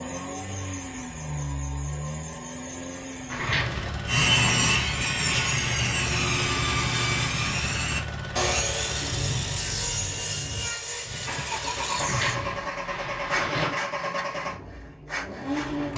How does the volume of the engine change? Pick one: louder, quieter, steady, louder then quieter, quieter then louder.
steady.